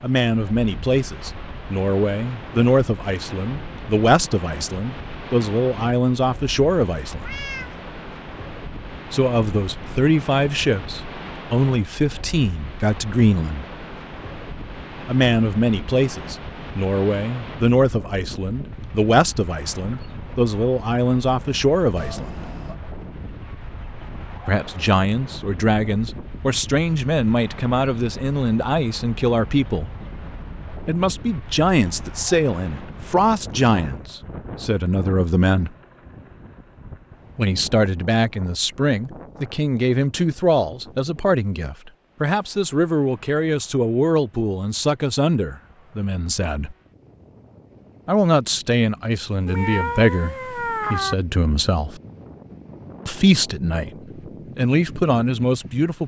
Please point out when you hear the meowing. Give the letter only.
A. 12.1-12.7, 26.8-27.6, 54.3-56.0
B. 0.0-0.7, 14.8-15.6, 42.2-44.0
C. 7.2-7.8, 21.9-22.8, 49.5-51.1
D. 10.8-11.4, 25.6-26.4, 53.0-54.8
C.